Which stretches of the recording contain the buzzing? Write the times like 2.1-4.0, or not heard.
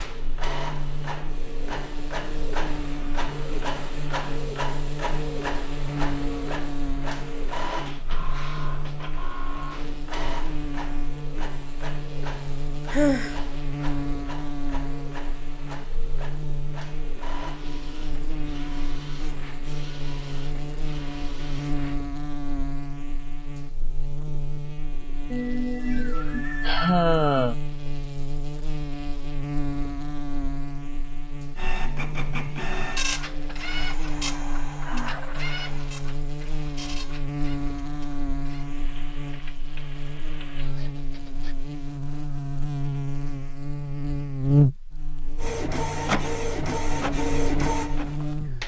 0.0-48.6.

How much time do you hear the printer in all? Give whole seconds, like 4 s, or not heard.
35 s.